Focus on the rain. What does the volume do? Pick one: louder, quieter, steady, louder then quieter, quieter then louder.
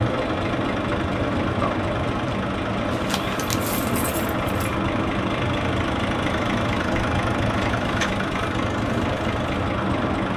steady.